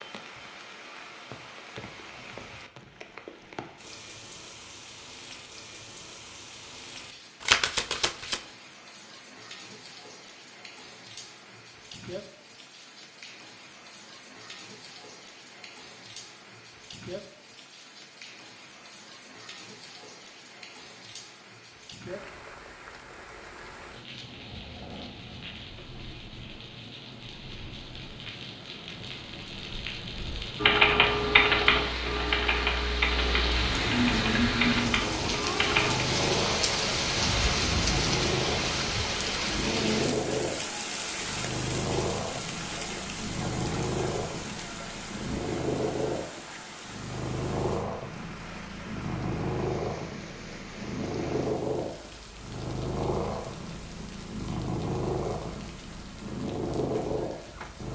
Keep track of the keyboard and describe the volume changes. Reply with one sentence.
The loudness of the keyboard goes down.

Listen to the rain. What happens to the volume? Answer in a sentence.
The loudness of the rain goes up, then down.